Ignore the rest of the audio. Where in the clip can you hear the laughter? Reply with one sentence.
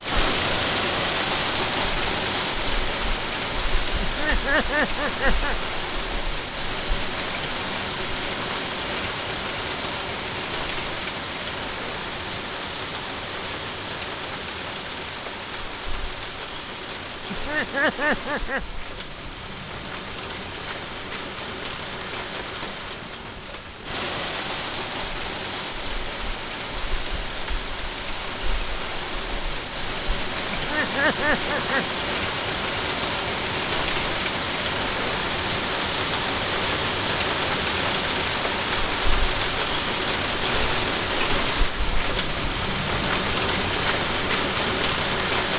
The laughter can be heard from 4.0 to 5.5 s, from 17.3 to 18.6 s and from 30.5 to 31.9 s.